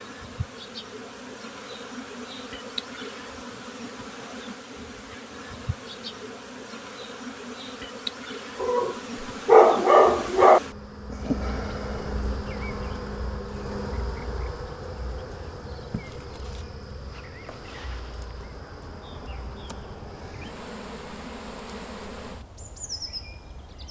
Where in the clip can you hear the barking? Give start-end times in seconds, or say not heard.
8.6-10.6.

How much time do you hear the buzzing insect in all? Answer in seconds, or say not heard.
24 s.